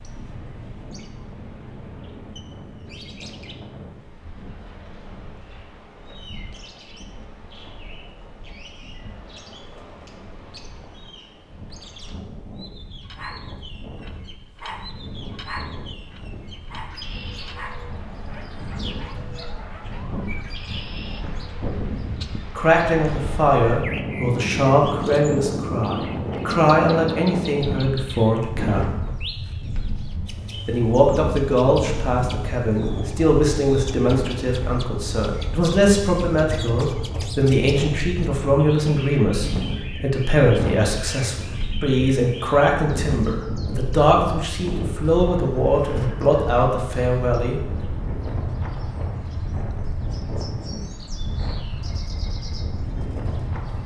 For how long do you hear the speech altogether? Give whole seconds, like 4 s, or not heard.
23 s.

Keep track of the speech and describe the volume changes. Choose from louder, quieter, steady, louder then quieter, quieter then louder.
steady.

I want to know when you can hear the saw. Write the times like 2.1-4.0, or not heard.
not heard.